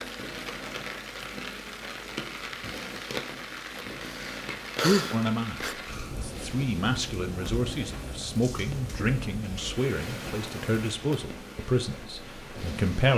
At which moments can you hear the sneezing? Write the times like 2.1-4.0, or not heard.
4.0-5.8.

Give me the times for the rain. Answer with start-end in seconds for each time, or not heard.
0.0-13.1.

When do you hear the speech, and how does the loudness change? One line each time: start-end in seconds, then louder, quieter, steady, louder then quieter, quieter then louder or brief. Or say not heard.
5.1-13.1 steady.